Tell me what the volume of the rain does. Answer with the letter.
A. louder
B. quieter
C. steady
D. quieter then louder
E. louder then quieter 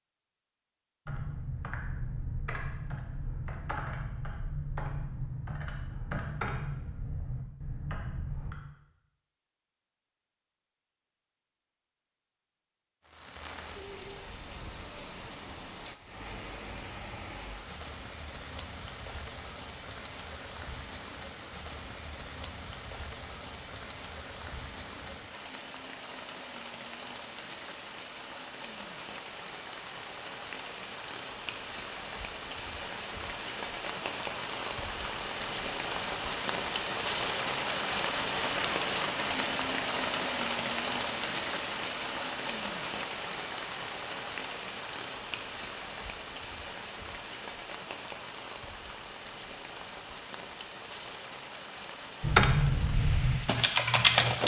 E.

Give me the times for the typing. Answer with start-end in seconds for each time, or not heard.
1.1-8.6, 52.2-54.4.